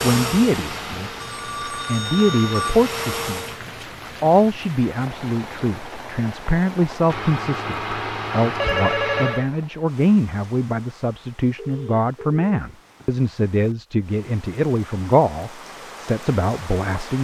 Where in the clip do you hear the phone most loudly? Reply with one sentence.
The loudest moment of the phone is at 9 seconds.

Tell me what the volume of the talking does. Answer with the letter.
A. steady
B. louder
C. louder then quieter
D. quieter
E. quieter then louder
A.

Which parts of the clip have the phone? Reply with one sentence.
The phone can be heard from 1.2 to 2.8 s, from 7.1 to 9.4 s and from 11.6 to 13.1 s.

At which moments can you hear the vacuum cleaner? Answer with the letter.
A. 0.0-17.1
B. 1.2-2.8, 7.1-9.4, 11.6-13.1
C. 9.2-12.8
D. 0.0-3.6
D.